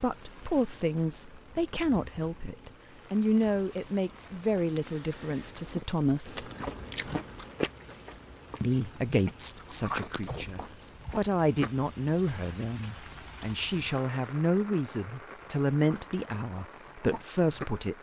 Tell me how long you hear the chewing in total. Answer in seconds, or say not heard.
8 s.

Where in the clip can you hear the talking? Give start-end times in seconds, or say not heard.
0.0-6.5, 8.6-17.9.